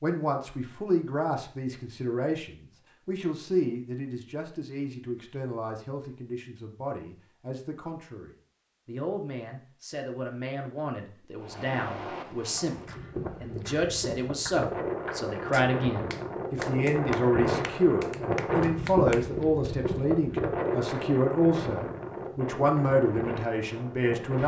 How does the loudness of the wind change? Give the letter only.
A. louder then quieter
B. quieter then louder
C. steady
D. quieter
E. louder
A.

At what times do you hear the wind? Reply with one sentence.
The wind can be heard from 11.3 to 24.4 s.